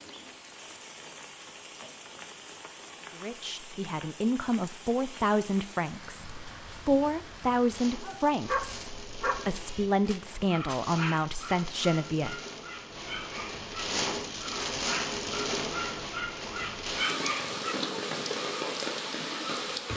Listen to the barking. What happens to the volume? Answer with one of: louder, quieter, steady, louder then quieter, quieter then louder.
quieter then louder.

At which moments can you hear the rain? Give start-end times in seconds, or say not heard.
0.0-19.9.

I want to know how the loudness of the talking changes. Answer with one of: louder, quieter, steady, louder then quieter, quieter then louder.
steady.